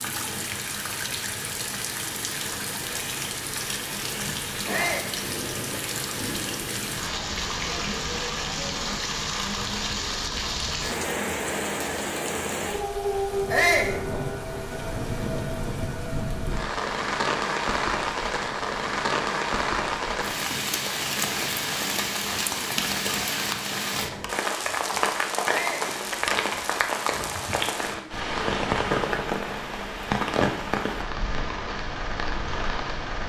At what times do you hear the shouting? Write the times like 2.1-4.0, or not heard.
4.7-5.1, 13.5-13.9, 25.4-25.9.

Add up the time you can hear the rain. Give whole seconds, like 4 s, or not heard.
33 s.